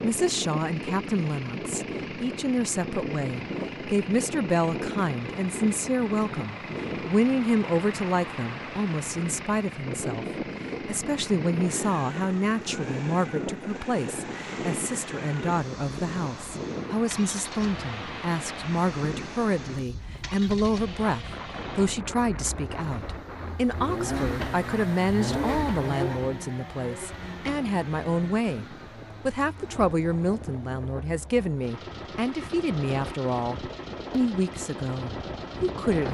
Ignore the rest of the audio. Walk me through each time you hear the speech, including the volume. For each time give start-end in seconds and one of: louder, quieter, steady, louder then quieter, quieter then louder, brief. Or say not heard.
0.0-36.0 steady.